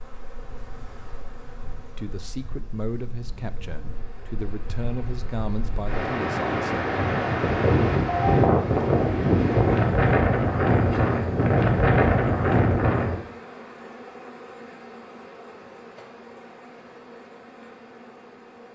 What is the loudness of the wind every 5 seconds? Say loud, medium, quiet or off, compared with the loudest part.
quiet, loud, loud, off.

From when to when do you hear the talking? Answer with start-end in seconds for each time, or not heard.
1.8-6.8.